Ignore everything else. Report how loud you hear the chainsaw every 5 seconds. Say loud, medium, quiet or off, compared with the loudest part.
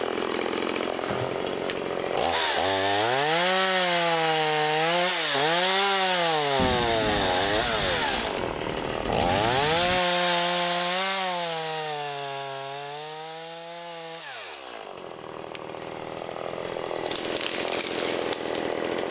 loud, loud, medium, medium.